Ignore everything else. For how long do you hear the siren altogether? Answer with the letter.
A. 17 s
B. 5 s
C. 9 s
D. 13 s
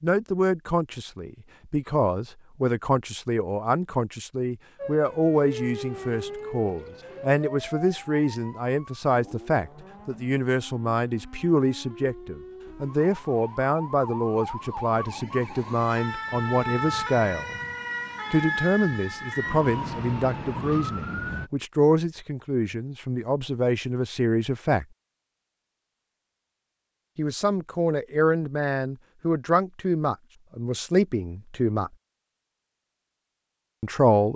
A.